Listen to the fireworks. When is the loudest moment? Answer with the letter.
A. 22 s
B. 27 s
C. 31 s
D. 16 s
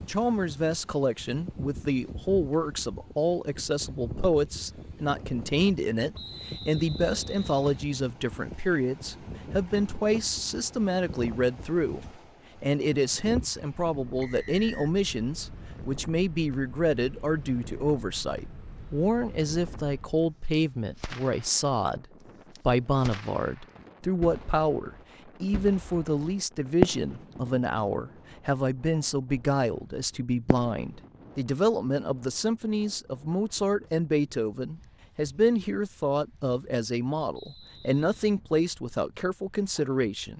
B.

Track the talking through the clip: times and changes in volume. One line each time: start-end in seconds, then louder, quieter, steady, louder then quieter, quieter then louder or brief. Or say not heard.
0.1-22.1 steady
22.6-40.3 steady.